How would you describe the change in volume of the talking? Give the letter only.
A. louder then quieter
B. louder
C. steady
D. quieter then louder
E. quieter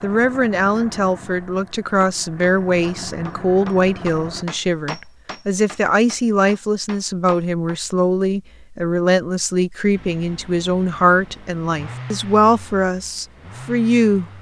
C.